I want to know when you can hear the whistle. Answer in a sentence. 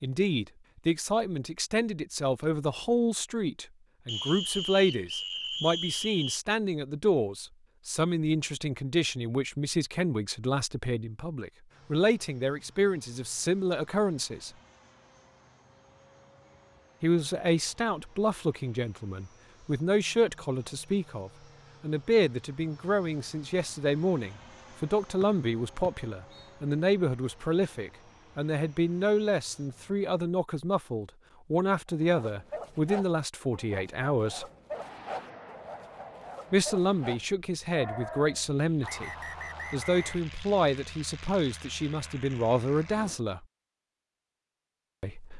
The whistle can be heard from 4.0 to 6.4 s, from 25.2 to 26.5 s and from 38.8 to 40.2 s.